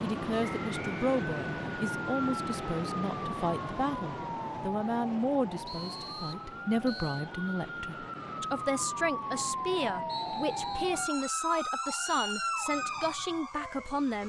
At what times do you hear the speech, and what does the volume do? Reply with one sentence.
The speech can be heard from 0.0 to 14.2 s, at a steady volume.